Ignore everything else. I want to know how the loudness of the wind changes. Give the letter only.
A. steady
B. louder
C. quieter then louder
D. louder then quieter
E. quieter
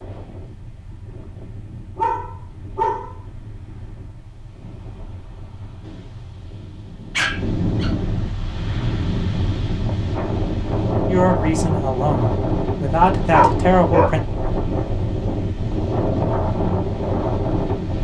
B.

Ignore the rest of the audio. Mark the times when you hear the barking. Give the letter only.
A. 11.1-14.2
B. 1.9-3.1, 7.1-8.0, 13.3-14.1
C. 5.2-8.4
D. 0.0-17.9
B.